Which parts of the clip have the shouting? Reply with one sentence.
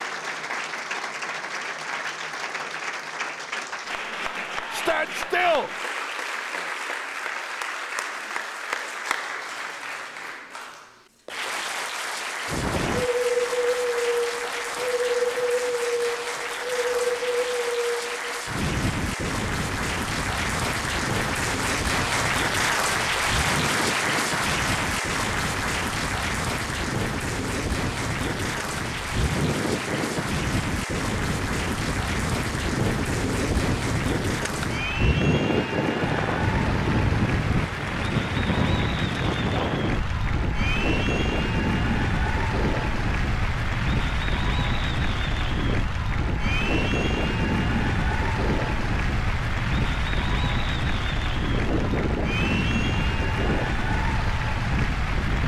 The shouting can be heard from 4.7 to 5.7 s.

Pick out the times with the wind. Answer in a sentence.
The wind can be heard from 12.4 to 55.4 s.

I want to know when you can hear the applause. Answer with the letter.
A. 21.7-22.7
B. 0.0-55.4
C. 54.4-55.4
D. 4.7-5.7
B.